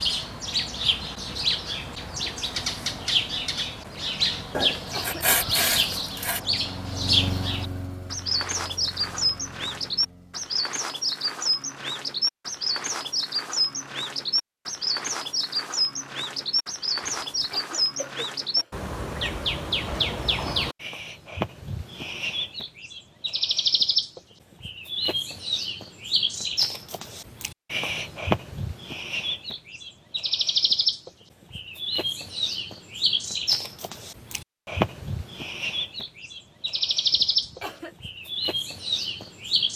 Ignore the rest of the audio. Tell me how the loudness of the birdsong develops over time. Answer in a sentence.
The loudness of the birdsong stays about the same.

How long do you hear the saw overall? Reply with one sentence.
You can hear the saw for 2 seconds altogether.